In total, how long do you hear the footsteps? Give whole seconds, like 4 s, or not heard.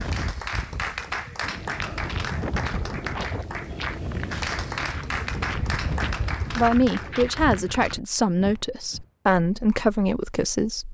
8 s.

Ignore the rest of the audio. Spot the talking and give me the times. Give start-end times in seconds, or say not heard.
6.5-10.8.